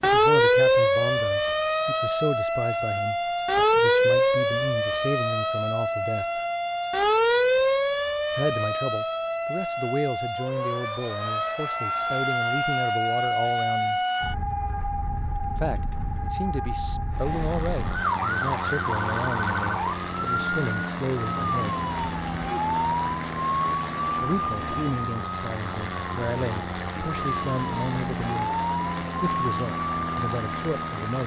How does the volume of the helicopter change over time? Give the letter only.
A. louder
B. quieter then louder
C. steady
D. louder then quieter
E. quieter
C.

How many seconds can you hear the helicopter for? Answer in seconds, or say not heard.
14 s.